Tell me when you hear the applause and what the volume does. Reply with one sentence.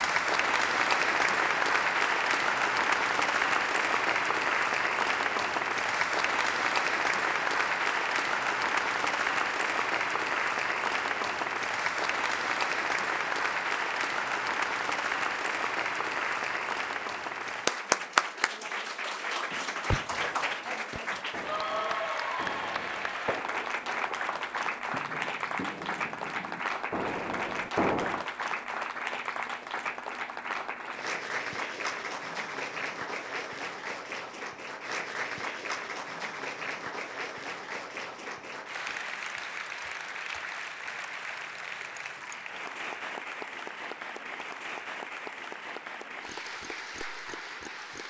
The applause can be heard from 0.0 to 48.0 s, getting quieter.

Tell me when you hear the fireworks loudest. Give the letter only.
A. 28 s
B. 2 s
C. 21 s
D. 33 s
A.